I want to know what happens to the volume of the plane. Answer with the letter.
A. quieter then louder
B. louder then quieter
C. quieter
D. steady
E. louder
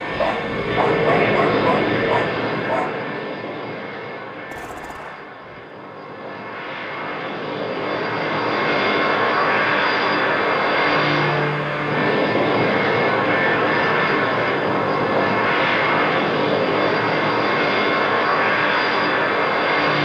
A.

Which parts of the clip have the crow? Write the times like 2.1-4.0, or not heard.
not heard.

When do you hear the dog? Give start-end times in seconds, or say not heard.
0.1-2.9.